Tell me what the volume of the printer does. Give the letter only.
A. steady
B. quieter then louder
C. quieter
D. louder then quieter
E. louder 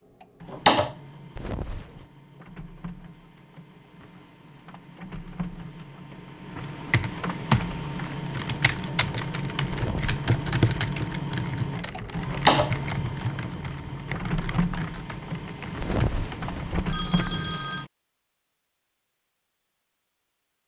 E.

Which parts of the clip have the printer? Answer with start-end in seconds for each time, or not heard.
0.0-17.9.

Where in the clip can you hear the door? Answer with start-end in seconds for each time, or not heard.
0.5-0.9, 12.3-12.8.